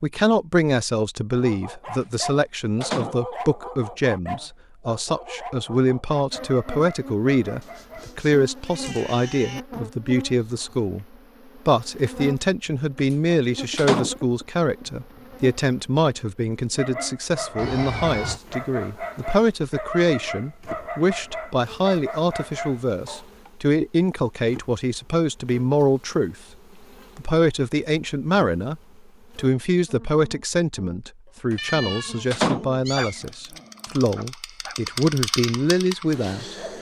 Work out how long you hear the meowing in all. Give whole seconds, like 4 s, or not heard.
4 s.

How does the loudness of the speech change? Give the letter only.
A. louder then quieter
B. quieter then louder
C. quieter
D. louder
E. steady
E.